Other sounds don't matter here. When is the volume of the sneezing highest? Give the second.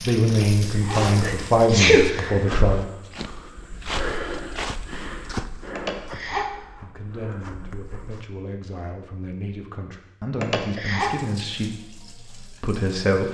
2 s.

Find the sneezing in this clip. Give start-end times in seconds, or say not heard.
0.4-2.4, 5.7-6.5, 10.3-11.2.